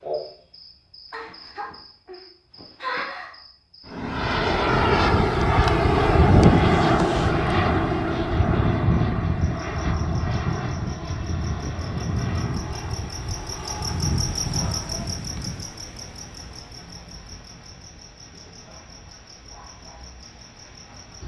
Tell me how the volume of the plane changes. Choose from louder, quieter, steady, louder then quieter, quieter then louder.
quieter.